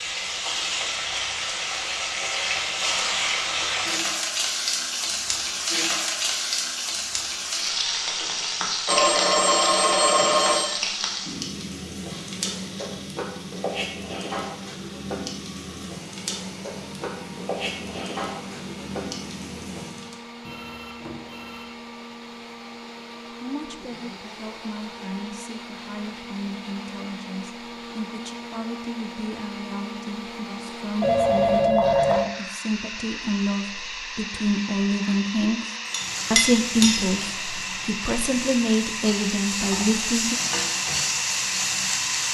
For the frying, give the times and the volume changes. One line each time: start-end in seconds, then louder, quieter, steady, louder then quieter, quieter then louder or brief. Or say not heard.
0.0-20.1 quieter
35.9-42.3 quieter then louder.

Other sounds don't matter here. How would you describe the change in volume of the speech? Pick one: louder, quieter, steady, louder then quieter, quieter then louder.
louder.